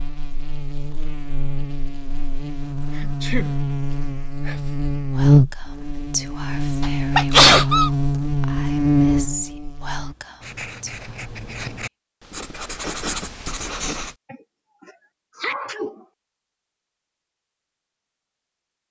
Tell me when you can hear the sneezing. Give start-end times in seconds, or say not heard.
3.0-3.5, 6.8-7.9, 14.3-15.9.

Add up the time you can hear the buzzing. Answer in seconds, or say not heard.
10 s.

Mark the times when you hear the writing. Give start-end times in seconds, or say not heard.
10.4-14.2.